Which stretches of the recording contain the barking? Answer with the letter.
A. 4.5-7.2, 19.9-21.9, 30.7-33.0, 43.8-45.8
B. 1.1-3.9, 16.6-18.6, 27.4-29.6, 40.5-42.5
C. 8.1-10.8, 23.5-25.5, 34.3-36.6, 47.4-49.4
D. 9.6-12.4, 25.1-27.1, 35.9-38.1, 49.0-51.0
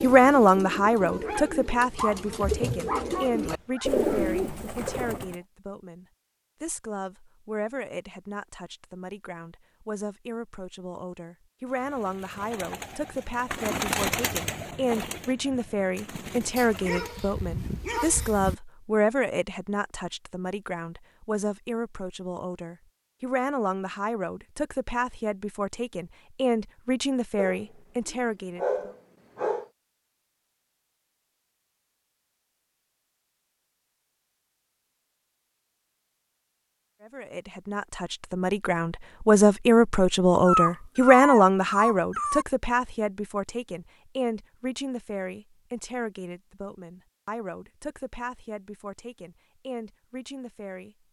B.